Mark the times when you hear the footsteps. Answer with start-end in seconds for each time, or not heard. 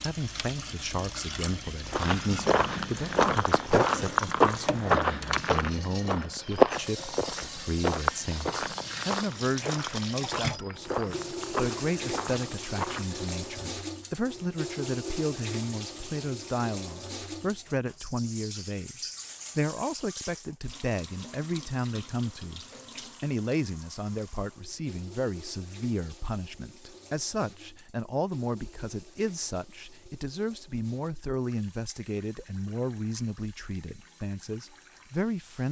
1.9-13.5.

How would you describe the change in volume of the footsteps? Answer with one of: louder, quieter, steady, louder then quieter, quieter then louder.
quieter.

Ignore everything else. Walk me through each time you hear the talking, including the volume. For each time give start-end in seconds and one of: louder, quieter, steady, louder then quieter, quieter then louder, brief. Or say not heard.
0.0-35.6 steady.